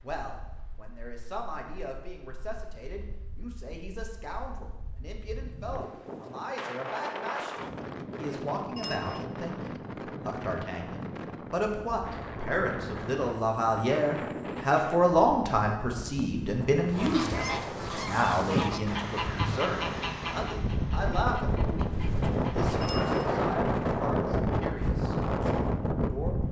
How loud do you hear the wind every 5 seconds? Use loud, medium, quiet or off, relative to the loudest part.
quiet, medium, medium, medium, loud, loud.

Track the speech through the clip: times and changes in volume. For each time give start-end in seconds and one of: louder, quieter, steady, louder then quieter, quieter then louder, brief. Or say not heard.
0.0-26.4 louder then quieter.